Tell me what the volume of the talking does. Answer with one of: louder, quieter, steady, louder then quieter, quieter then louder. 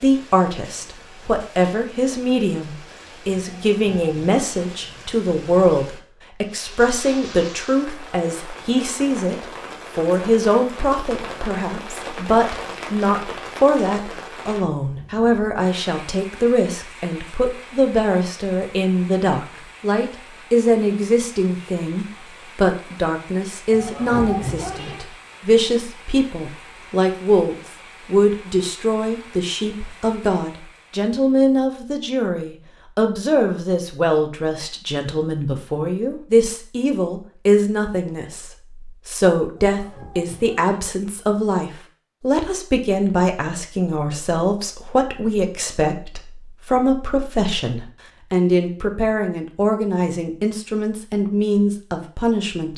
steady.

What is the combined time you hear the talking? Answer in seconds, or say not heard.
53 s.